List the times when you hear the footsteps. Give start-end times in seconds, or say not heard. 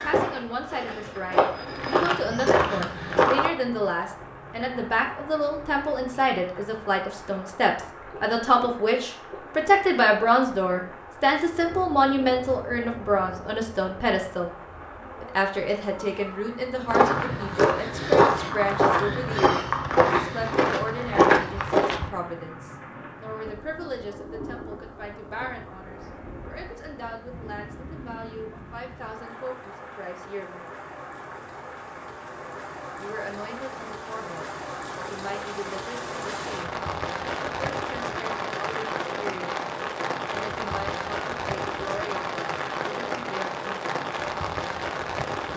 0.0-3.5, 16.9-22.1.